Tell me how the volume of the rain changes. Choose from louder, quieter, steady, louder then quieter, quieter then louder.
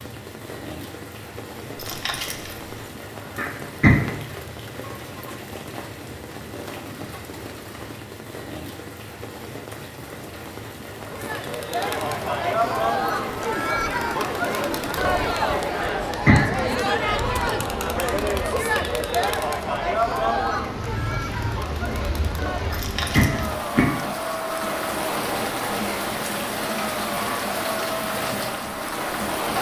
louder.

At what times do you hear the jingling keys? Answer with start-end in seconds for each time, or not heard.
1.8-2.7, 22.7-23.6.